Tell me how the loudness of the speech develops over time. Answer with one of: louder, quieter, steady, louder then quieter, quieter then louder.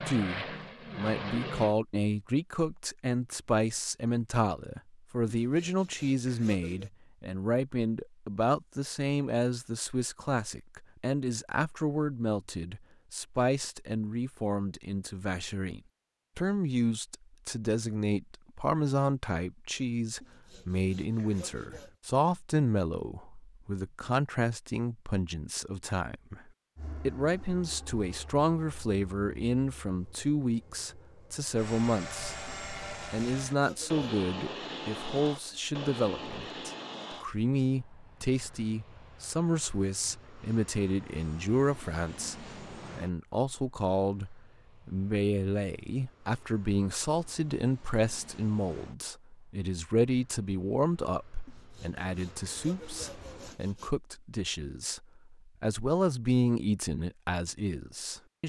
steady.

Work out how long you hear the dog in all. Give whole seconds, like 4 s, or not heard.
not heard.